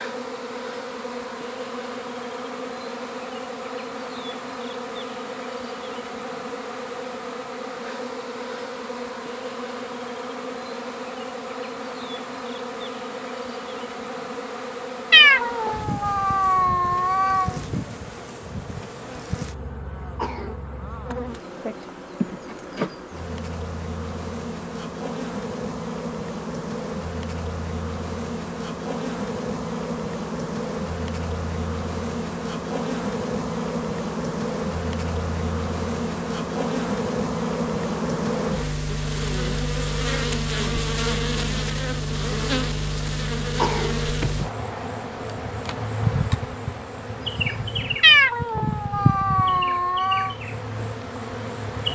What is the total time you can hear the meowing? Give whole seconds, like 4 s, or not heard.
5 s.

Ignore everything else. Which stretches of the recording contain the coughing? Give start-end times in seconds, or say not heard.
20.1-20.6, 43.5-44.0.